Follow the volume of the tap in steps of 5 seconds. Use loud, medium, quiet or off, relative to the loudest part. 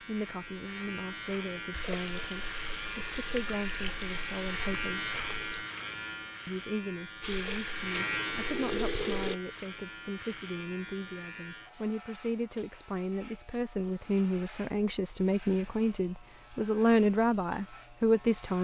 medium, loud, off, off.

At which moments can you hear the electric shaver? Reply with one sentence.
You can hear the electric shaver from 0.0 to 18.6 s.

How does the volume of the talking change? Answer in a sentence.
The loudness of the talking goes up.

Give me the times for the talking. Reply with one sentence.
You can hear the talking from 0.1 to 5.1 s and from 6.5 to 18.6 s.